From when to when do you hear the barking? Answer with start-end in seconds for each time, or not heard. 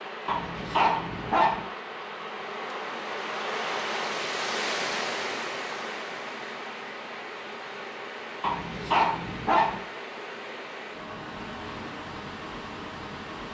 0.2-1.6, 8.4-9.8.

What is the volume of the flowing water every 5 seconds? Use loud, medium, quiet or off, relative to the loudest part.
loud, loud, medium.